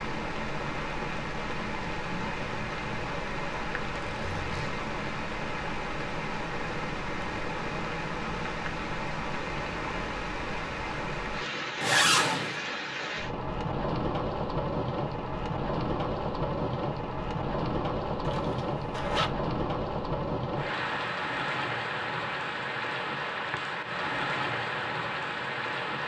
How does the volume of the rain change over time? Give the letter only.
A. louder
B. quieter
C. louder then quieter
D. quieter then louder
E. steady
E.